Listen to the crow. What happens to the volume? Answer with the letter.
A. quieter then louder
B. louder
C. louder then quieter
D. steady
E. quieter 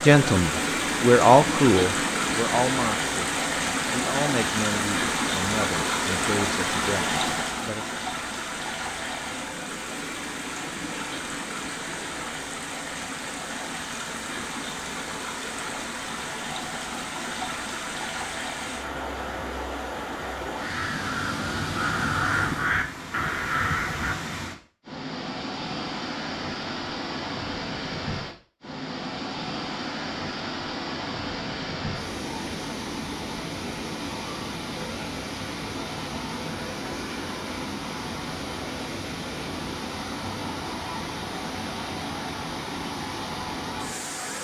B.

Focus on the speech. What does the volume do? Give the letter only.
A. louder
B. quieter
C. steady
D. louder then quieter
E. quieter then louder
B.